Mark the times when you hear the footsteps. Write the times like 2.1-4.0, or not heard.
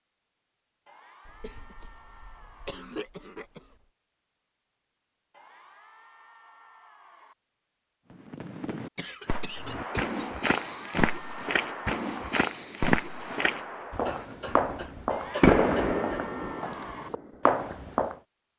9.6-18.2.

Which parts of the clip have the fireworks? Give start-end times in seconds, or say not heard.
8.1-17.6.